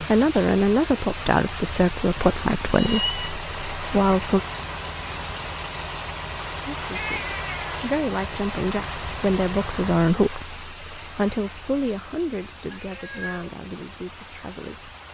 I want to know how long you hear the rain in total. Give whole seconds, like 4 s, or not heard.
15 s.